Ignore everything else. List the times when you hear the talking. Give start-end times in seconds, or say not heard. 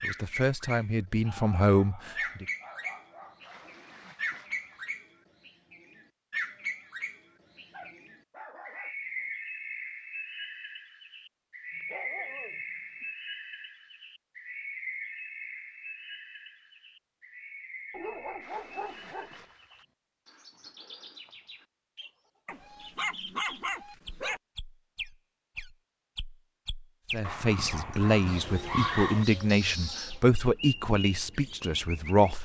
0.0-2.5, 27.1-32.4.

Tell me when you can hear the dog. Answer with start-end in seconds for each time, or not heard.
1.2-3.6, 7.7-9.3, 11.7-13.1, 17.9-19.4, 22.4-24.4, 27.2-29.2.